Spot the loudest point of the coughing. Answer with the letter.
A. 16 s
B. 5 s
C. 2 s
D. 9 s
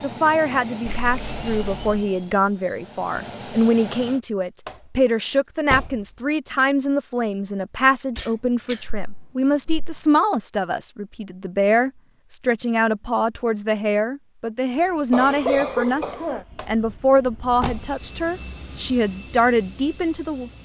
A.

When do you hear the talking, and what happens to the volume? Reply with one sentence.
The talking can be heard from 0.0 to 20.5 s, at a steady volume.